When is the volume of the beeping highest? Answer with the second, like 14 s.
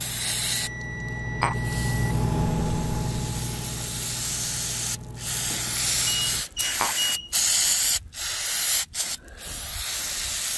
7 s.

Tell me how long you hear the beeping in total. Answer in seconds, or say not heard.
4 s.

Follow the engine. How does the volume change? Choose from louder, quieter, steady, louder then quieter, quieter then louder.
louder then quieter.